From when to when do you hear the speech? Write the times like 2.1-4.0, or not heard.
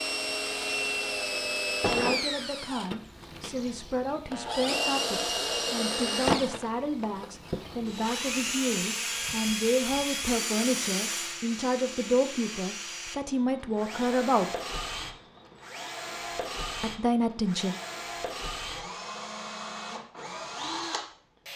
1.9-14.5, 16.8-17.8.